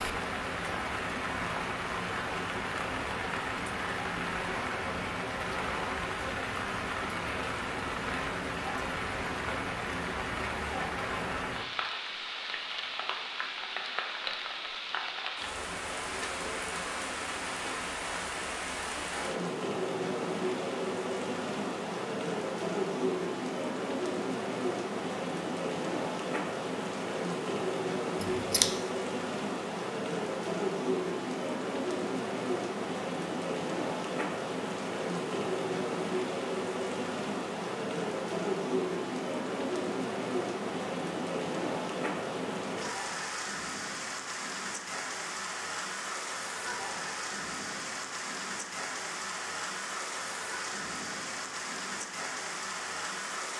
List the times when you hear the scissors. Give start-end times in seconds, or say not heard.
28.2-28.7.